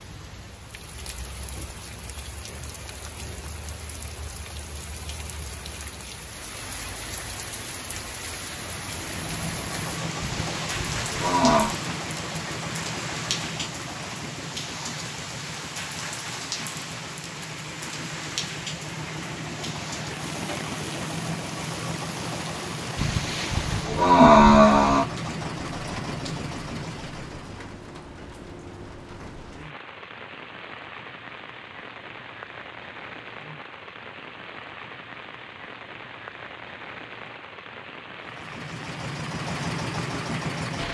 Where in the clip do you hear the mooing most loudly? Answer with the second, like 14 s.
24 s.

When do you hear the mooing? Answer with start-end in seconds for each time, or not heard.
10.2-11.8, 22.9-25.1.